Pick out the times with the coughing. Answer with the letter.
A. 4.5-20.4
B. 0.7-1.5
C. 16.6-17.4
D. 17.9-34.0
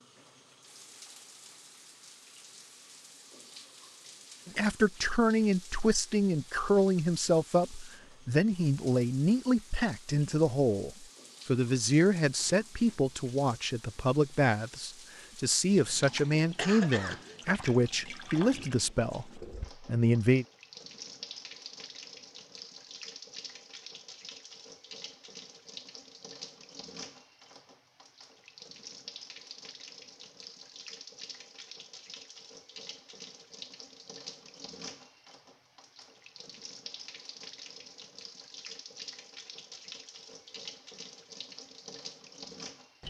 C.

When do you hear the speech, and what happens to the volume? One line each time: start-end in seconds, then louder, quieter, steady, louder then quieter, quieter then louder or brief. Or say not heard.
4.5-20.4 steady.